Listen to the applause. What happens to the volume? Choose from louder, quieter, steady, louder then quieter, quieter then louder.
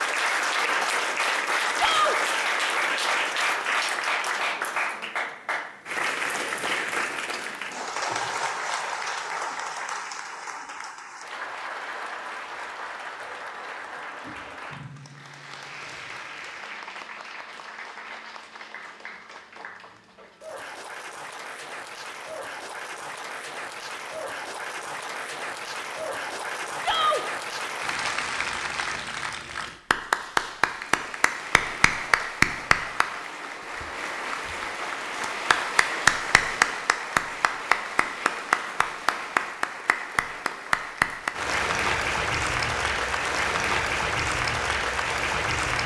quieter then louder.